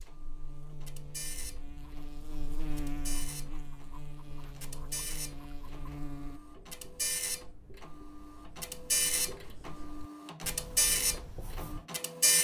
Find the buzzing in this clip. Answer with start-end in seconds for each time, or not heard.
0.0-6.4.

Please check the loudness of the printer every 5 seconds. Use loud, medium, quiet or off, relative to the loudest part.
quiet, medium, loud.